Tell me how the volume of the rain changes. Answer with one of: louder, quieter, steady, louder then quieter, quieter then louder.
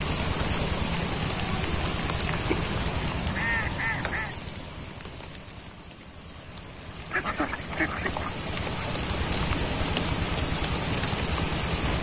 quieter then louder.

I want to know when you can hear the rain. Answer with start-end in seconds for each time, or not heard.
0.0-11.9.